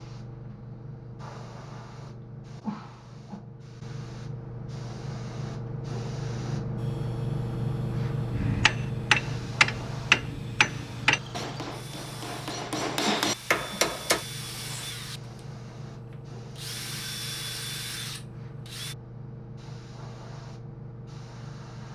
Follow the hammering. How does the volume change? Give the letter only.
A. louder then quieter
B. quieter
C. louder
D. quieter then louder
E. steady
D.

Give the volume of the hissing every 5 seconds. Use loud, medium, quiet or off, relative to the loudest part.
medium, loud, medium, medium, medium.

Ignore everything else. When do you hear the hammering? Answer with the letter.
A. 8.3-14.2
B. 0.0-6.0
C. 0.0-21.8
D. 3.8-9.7
A.